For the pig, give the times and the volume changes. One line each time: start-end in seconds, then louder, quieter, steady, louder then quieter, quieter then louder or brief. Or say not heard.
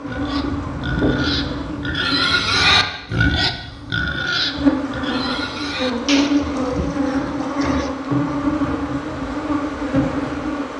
0.1-7.9 louder then quieter.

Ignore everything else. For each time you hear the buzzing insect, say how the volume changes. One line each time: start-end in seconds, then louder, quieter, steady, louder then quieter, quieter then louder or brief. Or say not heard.
0.0-10.7 quieter then louder.